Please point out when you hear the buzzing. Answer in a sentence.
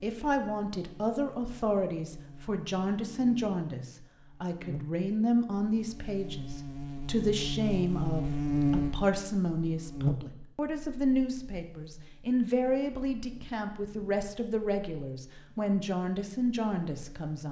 You can hear the buzzing from 0.0 to 17.3 s.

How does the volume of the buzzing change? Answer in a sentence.
The volume of the buzzing goes up, then down.